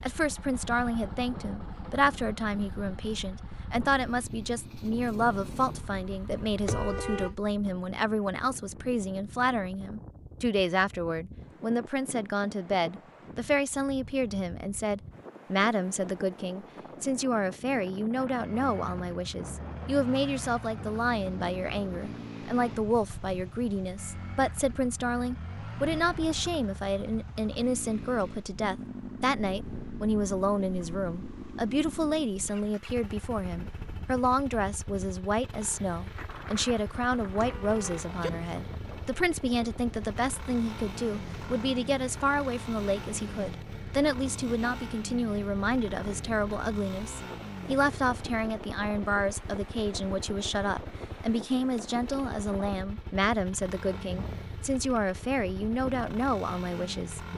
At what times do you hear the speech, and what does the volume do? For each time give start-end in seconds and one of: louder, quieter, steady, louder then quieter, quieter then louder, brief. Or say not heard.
0.0-57.2 steady.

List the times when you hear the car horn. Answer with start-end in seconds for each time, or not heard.
6.7-7.3, 37.4-38.3.